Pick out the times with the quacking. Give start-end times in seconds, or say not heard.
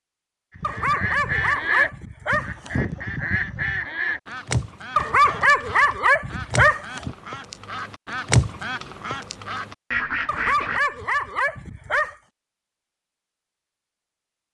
0.6-10.8.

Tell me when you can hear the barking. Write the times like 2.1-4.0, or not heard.
0.6-3.0, 5.0-7.2, 10.2-12.2.